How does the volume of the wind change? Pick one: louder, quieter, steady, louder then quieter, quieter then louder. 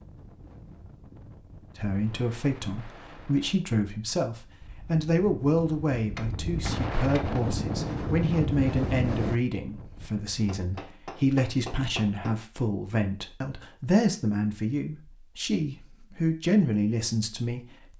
louder.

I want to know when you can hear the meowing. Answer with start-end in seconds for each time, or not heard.
not heard.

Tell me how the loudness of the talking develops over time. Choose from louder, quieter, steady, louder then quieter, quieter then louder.
steady.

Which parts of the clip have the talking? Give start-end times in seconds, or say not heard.
1.8-17.9.